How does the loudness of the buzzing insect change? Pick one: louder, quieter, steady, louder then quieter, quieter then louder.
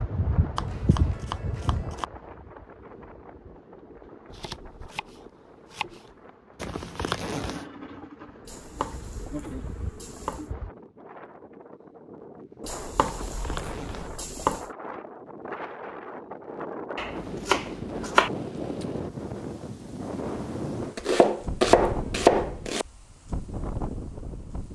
quieter then louder.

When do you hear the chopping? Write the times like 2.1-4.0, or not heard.
0.6-2.0, 4.3-6.1, 8.4-10.4, 12.7-14.7, 16.9-18.3, 20.8-22.9.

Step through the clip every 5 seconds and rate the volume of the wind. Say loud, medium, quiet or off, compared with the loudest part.
medium, quiet, medium, loud, loud.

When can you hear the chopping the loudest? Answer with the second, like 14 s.
22 s.